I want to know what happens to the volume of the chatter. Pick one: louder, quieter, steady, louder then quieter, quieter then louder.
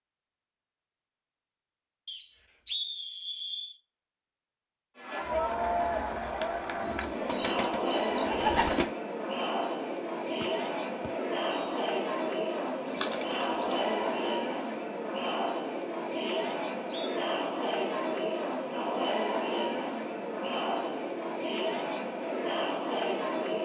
steady.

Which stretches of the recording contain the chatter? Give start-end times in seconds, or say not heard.
5.0-23.5.